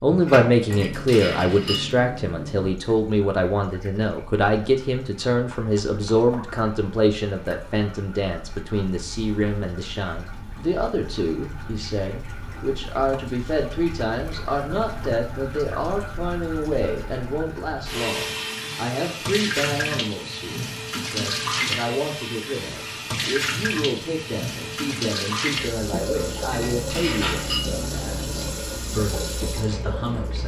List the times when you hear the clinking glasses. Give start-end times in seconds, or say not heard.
0.7-2.7, 26.5-28.6.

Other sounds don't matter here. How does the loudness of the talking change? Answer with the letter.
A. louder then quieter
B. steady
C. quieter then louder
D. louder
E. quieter
E.